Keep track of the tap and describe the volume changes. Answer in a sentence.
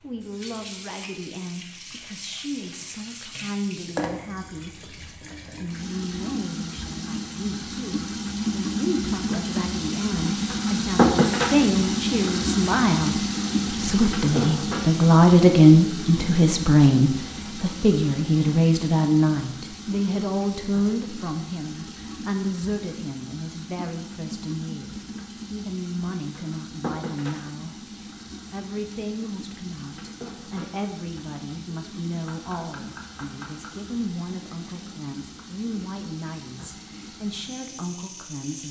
The volume of the tap goes up, then down.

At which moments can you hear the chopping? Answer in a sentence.
The chopping can be heard from 32.2 to 33.8 s.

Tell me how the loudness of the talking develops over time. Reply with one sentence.
The loudness of the talking goes up, then down.